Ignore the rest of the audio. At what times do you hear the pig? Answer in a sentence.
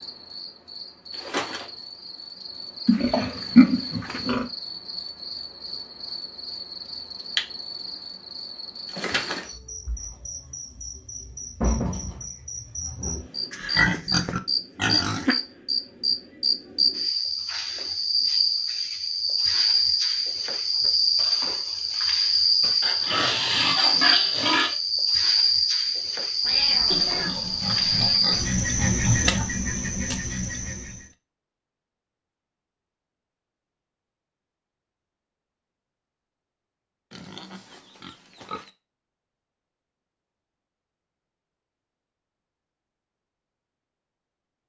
You can hear the pig from 2.9 to 4.5 s, from 13.5 to 15.3 s, from 22.8 to 24.8 s, from 26.9 to 29.5 s and from 37.1 to 38.7 s.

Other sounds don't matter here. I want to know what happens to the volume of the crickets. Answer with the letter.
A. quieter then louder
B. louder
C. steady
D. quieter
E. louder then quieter
B.